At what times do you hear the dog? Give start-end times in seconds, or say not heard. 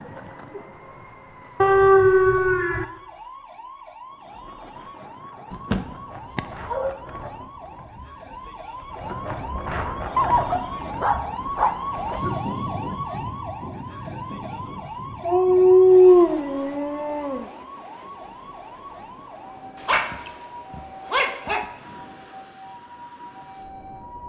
1.6-2.9, 5.5-7.3, 10.2-12.2, 15.2-17.4, 19.8-21.7.